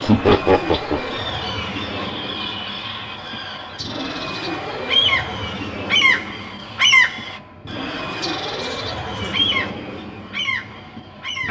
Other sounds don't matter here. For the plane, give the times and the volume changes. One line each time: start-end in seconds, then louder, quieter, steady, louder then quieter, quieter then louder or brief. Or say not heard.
0.0-11.4 steady.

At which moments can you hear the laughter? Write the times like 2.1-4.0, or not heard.
0.1-1.2, 8.6-9.3.